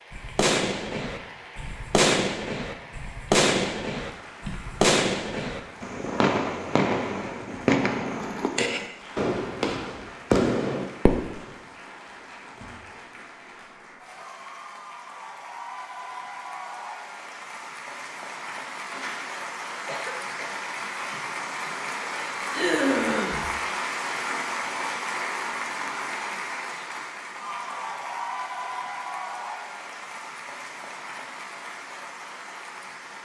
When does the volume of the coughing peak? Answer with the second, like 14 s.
23 s.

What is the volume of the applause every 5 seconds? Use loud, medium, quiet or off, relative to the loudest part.
quiet, quiet, quiet, medium, loud, loud, medium.